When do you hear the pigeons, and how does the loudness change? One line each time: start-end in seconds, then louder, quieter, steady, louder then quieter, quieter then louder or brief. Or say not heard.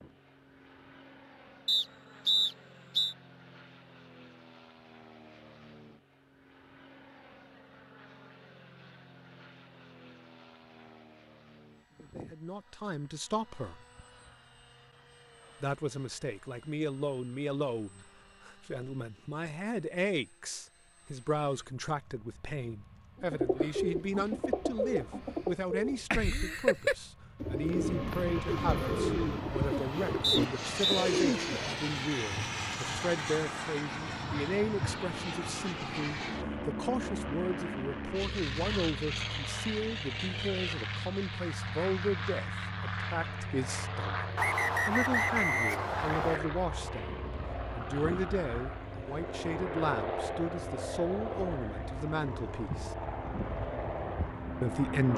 23.2-31.8 steady.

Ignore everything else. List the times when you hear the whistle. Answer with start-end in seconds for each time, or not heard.
1.6-3.1, 30.2-31.1, 44.4-46.4.